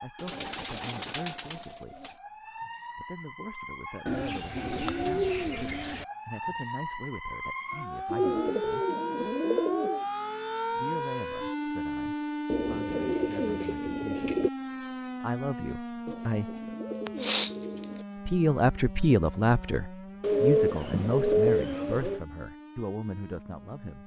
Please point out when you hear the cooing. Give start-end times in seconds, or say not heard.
0.1-2.1, 4.0-6.0, 8.1-10.1, 12.5-14.5, 16.1-18.1, 20.2-22.2.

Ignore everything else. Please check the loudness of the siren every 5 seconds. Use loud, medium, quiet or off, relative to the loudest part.
medium, loud, loud, medium, quiet.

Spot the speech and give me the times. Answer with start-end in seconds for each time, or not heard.
0.0-2.1, 3.0-8.8, 10.7-14.3, 15.2-16.6, 18.2-24.0.